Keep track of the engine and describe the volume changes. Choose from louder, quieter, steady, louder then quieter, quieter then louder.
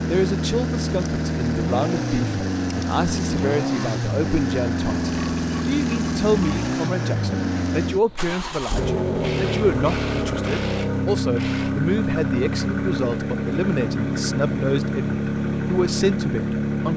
steady.